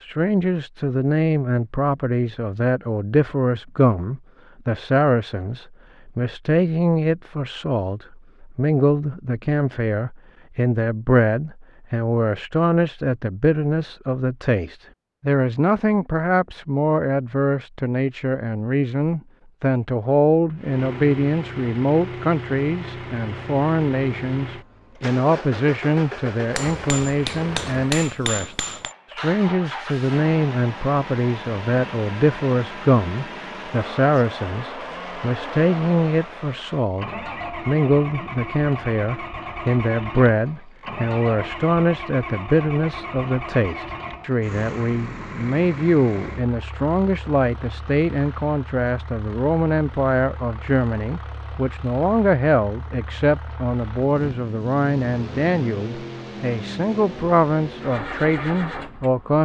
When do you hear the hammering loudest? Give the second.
28 s.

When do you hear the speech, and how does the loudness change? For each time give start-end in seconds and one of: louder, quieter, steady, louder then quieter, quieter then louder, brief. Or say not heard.
0.0-59.3 steady.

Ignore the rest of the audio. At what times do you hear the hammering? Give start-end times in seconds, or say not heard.
26.6-28.9.